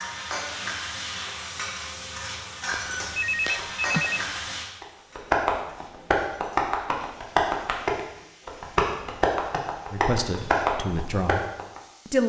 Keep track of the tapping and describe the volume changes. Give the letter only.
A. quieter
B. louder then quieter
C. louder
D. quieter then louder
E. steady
E.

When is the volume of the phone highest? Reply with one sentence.
The loudest moment of the phone is at 4 seconds.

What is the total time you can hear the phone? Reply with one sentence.
The phone can be heard for 2 seconds in total.